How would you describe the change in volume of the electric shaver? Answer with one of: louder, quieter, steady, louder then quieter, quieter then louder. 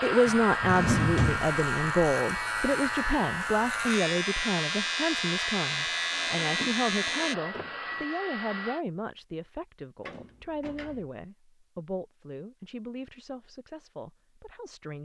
steady.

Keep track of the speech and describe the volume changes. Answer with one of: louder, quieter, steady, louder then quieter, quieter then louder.
quieter.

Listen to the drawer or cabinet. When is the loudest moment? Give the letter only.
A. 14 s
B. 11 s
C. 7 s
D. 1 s
D.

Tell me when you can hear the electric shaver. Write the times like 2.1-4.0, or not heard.
0.0-7.3.